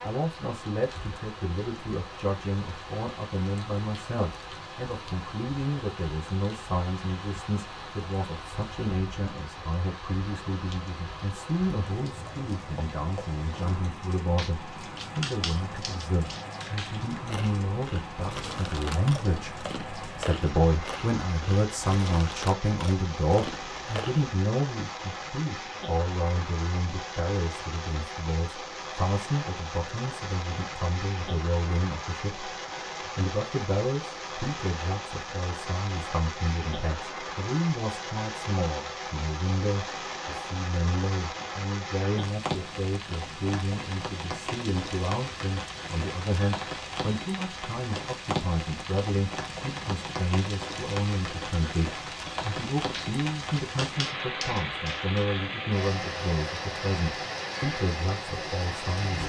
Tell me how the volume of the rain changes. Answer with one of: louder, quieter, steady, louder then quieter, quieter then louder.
louder.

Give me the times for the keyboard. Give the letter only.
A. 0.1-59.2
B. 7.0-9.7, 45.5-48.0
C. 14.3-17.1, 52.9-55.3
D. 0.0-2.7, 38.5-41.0
C.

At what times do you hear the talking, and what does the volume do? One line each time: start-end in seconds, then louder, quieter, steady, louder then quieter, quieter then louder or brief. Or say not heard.
0.1-59.2 steady.